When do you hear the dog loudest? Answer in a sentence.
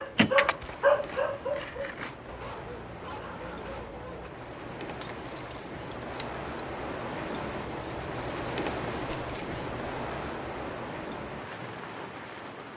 The volume of the dog peaks at 1 second.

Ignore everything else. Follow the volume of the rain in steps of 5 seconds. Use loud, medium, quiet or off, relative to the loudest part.
medium, loud, loud.